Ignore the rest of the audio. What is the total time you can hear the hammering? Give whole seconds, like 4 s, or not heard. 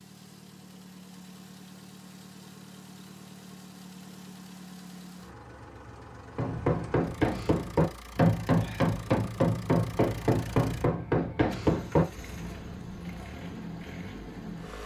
6 s.